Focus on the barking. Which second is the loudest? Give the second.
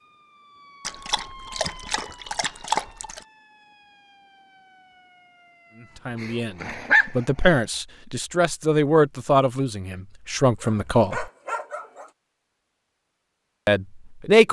7 s.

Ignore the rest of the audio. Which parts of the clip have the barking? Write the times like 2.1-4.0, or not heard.
0.8-3.2, 6.2-7.6, 10.6-12.1.